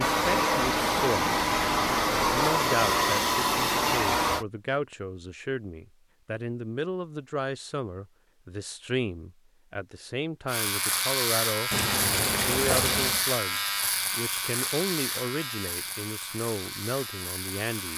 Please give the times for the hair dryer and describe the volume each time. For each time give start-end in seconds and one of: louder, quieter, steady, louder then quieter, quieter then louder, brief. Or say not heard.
0.0-4.5 steady.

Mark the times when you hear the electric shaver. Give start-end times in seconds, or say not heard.
10.4-17.9.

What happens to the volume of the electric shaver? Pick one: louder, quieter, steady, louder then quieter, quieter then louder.
quieter.